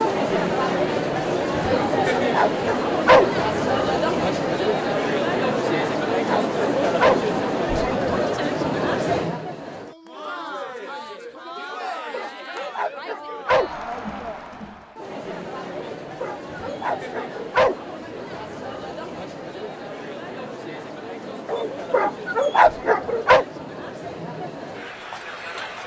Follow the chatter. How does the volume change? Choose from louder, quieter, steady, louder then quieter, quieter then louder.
quieter.